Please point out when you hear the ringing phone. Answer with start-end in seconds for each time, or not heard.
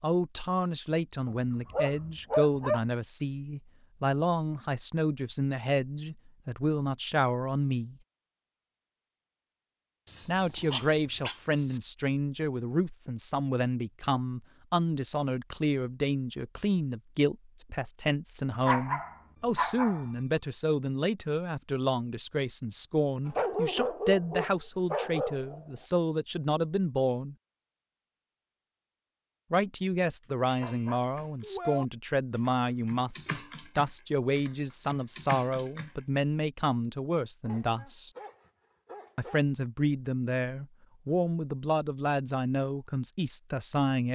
not heard.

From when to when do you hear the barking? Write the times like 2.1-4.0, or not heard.
1.2-2.8, 10.1-11.8, 18.6-20.1, 23.2-25.6, 30.4-31.9, 37.4-39.5.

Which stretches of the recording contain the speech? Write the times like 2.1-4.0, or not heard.
0.0-8.0, 10.2-27.4, 29.5-38.1, 39.1-44.1.